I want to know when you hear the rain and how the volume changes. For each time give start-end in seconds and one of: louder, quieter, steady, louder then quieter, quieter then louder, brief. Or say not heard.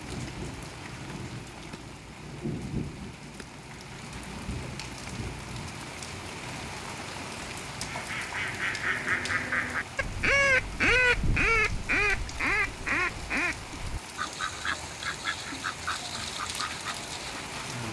0.0-17.8 steady.